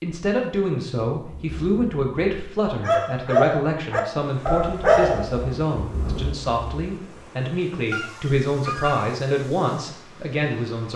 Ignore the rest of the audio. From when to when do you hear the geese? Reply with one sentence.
You can hear the geese from 7.9 to 9.2 s.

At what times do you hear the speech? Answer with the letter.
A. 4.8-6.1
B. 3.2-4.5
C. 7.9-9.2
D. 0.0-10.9
D.